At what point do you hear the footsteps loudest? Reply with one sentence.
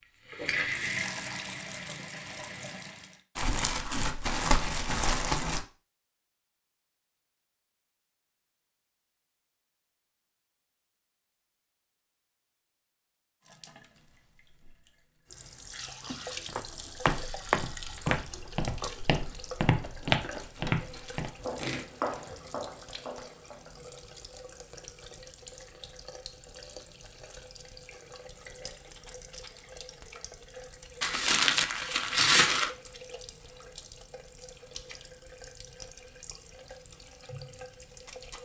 The volume of the footsteps peaks at 20 seconds.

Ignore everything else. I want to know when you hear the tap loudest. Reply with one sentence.
The loudest moment of the tap is at 1 second.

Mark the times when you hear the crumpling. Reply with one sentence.
You can hear the crumpling from 3.4 to 5.7 s, from 20.4 to 22.1 s and from 31.0 to 32.7 s.